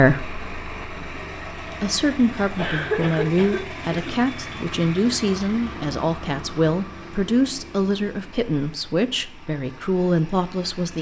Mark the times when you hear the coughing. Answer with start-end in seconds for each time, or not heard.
2.5-4.2.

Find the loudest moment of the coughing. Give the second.
3 s.